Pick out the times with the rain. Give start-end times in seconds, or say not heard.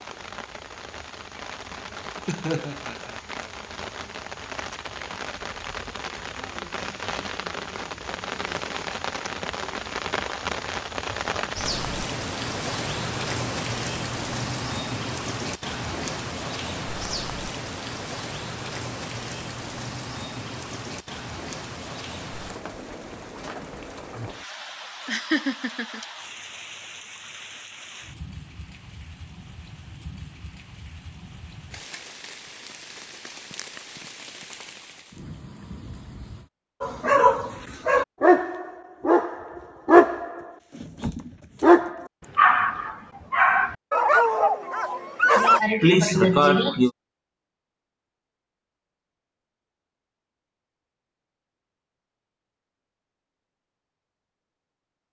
0.0-36.5.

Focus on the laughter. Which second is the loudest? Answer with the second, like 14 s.
46 s.